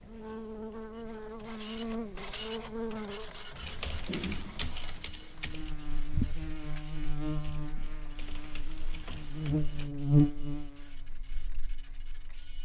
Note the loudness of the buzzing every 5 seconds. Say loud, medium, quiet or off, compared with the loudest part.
medium, medium, loud.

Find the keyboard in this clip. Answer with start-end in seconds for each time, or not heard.
3.5-9.9.